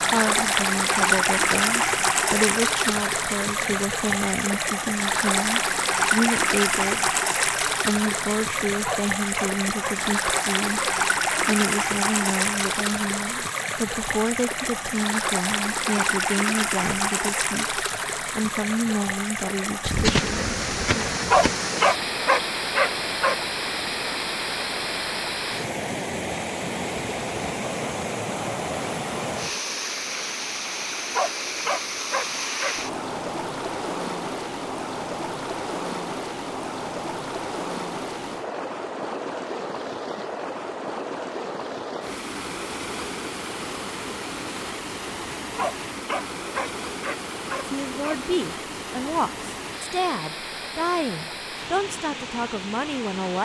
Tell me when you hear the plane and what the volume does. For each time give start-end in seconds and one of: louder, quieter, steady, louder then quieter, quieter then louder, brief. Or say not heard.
not heard.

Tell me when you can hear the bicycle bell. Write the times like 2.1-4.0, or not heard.
not heard.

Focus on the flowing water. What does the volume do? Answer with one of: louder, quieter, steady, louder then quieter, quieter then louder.
quieter.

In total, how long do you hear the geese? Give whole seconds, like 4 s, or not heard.
2 s.